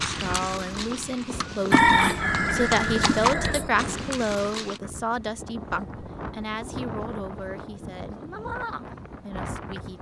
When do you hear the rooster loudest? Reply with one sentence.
The loudest moment of the rooster is at 2 seconds.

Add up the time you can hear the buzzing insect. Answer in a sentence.
You can't hear the buzzing insect here.